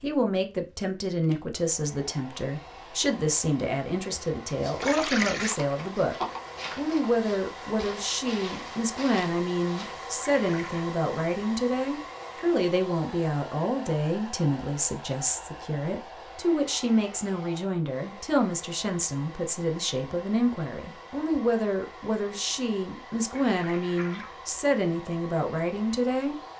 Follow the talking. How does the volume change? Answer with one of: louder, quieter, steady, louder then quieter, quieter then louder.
steady.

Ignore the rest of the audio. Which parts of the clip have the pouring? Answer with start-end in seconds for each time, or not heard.
4.8-5.5, 10.3-10.8, 23.2-24.4.